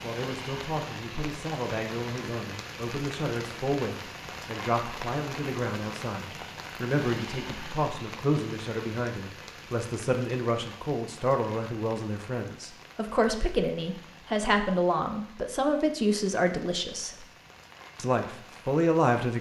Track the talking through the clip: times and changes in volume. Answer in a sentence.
The talking can be heard from 0.0 to 17.2 s, getting louder; and briefly from 17.9 to 19.3 s.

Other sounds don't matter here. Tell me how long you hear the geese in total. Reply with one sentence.
You can't hear the geese here.